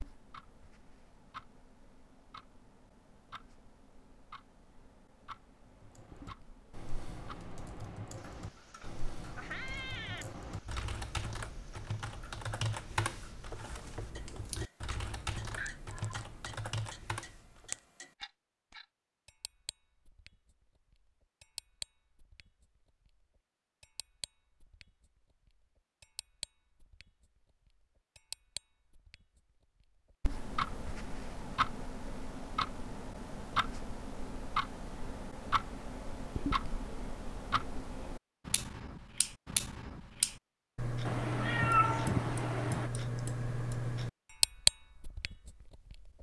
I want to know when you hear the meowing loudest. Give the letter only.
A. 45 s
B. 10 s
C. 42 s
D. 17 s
C.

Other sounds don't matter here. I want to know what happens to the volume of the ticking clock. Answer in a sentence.
The volume of the ticking clock goes up.